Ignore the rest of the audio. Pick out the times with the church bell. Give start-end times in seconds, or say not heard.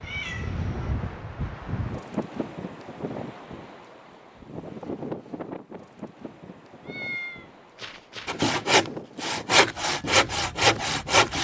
not heard.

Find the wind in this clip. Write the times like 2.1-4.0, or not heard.
0.0-11.3.